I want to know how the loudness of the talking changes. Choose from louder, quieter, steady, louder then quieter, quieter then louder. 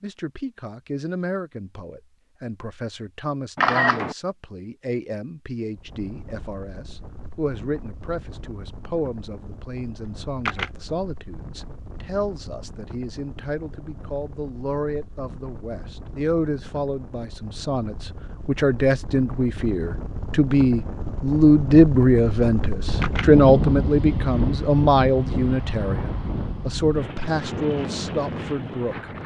louder.